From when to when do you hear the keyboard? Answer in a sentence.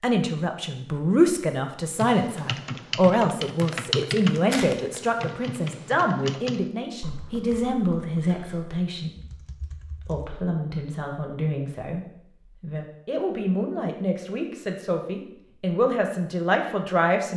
You can hear the keyboard from 1.9 to 10.3 s.